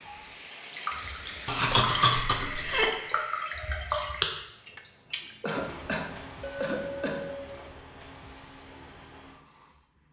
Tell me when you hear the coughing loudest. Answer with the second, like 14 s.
2 s.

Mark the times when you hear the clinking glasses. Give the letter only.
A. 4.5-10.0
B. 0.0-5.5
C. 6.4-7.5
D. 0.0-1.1
C.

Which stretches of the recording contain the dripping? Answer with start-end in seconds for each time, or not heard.
0.0-5.5.